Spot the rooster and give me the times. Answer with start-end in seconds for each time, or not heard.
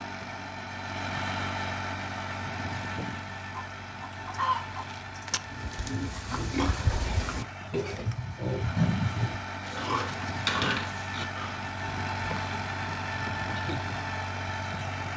3.5-5.4.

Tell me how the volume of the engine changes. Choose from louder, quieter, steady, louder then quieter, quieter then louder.
quieter then louder.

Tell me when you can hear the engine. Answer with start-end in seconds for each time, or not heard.
0.0-15.1.